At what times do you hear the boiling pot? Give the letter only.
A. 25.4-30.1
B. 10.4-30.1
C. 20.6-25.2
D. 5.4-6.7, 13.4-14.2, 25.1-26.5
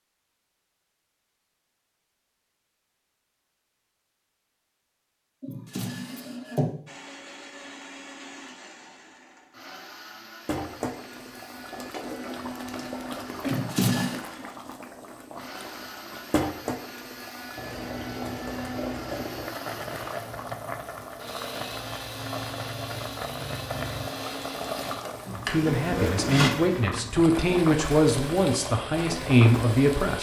B.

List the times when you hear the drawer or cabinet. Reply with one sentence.
You can hear the drawer or cabinet from 5.4 to 6.7 s, from 13.4 to 14.2 s and from 25.1 to 26.5 s.